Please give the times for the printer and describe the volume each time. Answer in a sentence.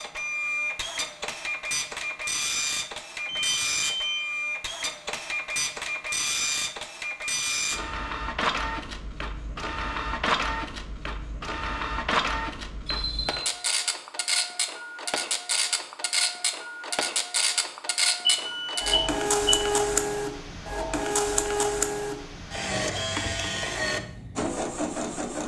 The printer can be heard from 0.0 to 25.4 s, at a steady volume.